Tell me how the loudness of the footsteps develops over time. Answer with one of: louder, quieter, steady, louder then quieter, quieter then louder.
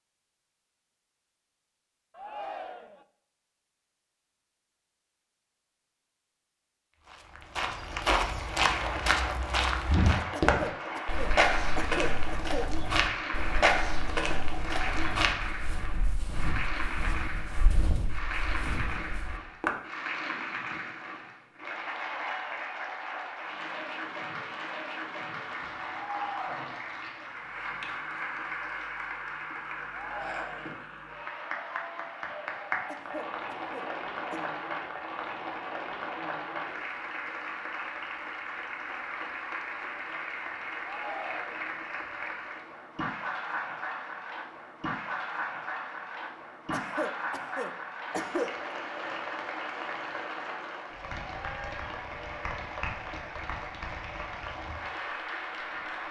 quieter.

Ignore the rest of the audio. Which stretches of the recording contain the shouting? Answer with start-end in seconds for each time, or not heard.
2.1-3.0, 29.9-30.8, 40.8-41.8.